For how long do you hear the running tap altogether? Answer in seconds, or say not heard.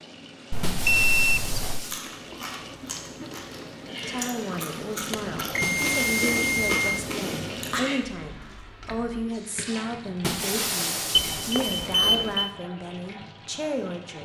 14 s.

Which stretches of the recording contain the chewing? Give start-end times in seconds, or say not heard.
1.9-9.1.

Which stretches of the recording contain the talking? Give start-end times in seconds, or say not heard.
4.0-14.2.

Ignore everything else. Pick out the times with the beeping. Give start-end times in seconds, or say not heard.
0.5-1.9, 5.1-7.0, 11.1-12.5.